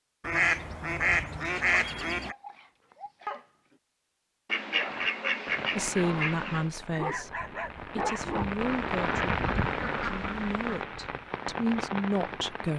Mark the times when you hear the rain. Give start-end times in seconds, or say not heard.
4.8-12.7.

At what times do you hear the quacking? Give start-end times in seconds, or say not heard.
0.2-2.4, 4.5-6.7, 8.6-10.8.